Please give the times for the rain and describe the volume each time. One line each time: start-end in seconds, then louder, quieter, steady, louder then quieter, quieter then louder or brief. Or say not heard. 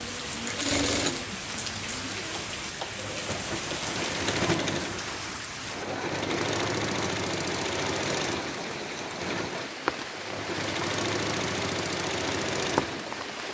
0.0-13.4 steady.